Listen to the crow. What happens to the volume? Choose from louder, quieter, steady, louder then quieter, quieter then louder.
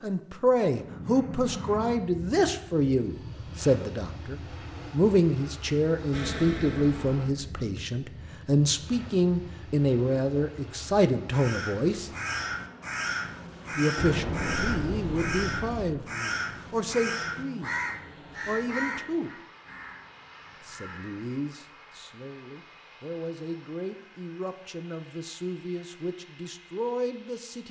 quieter.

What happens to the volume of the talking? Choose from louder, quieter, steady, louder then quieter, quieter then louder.
quieter.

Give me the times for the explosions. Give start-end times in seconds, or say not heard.
6.1-7.6, 13.9-16.0.